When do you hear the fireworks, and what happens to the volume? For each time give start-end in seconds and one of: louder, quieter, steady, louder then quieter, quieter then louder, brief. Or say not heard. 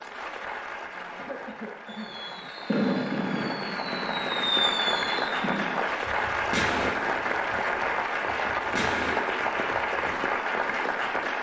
1.9-10.8 quieter then louder.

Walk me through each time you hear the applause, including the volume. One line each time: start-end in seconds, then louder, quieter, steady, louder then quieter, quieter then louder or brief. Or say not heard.
0.0-11.3 louder.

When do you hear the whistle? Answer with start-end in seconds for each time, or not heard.
not heard.